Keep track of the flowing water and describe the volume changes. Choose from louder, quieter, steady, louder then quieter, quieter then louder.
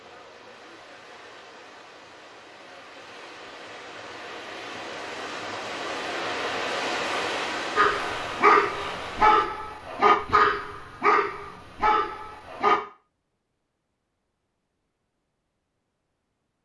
louder.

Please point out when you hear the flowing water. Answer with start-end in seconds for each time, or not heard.
0.0-9.4.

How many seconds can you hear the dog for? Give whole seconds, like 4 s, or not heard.
5 s.